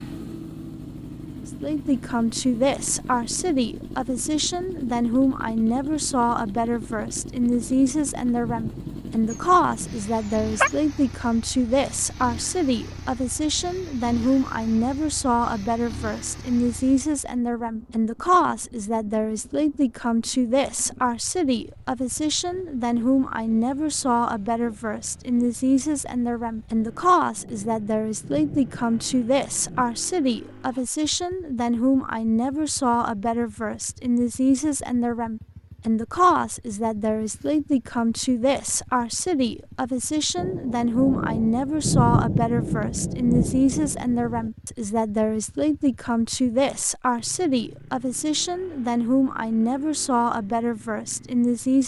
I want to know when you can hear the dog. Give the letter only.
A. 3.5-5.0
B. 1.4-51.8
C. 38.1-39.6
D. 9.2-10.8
D.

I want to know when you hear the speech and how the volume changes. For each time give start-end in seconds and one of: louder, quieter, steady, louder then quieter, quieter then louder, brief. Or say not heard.
1.4-51.8 steady.